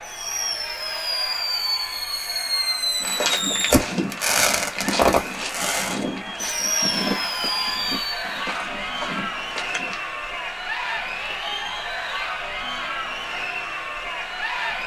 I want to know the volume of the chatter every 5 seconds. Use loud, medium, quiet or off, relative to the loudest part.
medium, loud, loud.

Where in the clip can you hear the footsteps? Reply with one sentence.
You can hear the footsteps from 3.0 to 10.0 s.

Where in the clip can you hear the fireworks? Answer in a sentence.
The fireworks can be heard from 0.0 to 8.2 s.